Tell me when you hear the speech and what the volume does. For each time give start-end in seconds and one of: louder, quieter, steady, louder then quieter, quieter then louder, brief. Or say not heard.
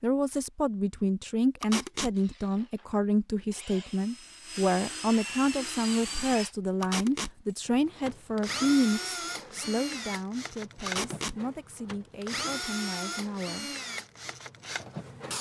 0.0-13.7 quieter.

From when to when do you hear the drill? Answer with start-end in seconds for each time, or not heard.
2.1-15.3.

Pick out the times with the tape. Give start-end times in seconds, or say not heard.
1.6-2.1, 6.8-7.3, 10.8-11.3.